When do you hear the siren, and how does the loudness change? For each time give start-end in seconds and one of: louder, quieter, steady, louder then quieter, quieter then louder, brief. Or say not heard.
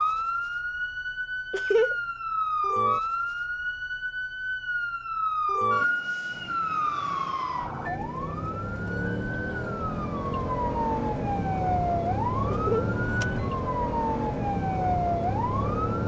0.0-16.0 steady.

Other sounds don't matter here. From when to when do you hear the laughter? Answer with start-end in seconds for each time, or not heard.
1.5-1.9, 12.5-12.9.